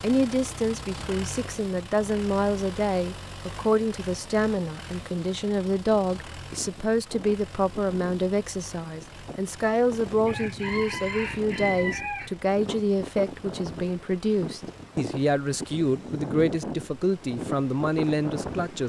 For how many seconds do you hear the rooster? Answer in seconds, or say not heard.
3 s.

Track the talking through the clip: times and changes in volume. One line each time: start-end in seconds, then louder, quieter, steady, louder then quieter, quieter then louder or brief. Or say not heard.
0.0-18.8 steady.